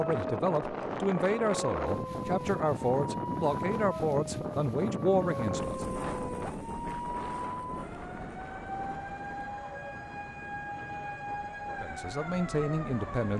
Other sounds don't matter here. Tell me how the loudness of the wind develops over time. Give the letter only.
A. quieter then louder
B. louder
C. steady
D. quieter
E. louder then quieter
D.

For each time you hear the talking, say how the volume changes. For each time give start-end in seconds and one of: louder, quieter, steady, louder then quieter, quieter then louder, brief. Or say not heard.
0.0-5.8 steady
11.8-13.3 brief.